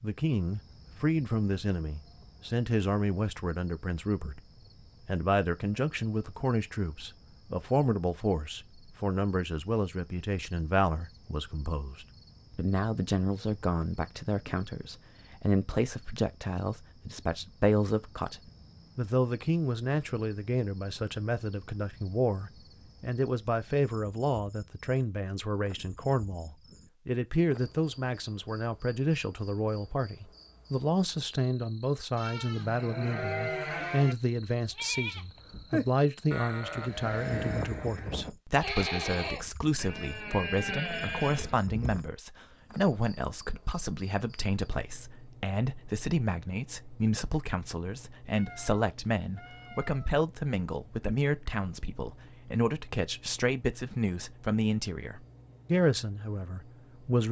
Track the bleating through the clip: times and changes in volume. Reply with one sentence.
You can hear the bleating from 32.1 to 42.0 s, at a steady volume.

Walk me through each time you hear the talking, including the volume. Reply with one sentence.
The talking can be heard from 0.0 to 57.2 s, at a steady volume.